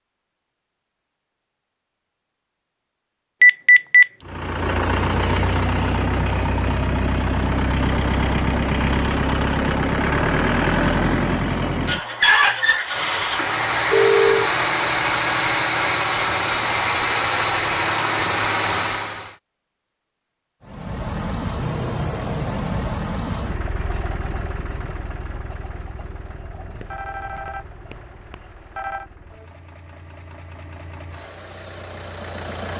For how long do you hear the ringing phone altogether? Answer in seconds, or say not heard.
4 s.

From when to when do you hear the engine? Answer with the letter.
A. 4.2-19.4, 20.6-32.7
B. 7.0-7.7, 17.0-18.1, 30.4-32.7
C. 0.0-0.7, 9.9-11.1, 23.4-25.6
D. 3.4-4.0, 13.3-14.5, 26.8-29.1
A.